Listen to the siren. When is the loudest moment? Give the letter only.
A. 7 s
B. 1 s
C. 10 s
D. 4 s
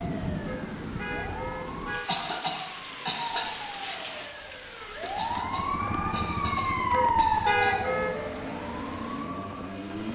A.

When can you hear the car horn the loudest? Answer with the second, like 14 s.
8 s.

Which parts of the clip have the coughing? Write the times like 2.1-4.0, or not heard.
2.0-3.5, 5.2-7.8.